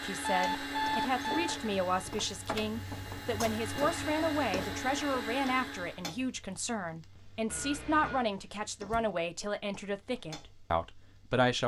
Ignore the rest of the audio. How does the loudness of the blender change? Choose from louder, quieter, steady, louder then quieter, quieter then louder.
quieter then louder.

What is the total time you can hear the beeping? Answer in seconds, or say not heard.
2 s.